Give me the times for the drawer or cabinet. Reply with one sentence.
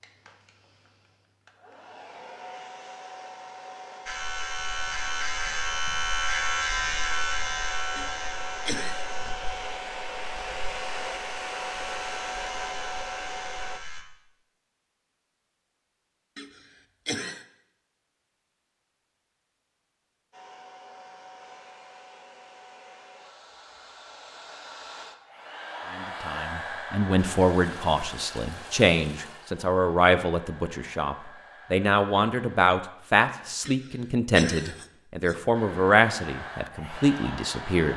You can't hear the drawer or cabinet here.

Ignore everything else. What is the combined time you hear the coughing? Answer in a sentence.
You can hear the coughing for 4 seconds altogether.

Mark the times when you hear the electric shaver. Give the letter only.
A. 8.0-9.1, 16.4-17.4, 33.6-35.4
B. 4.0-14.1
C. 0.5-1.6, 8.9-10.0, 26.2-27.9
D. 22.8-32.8
B.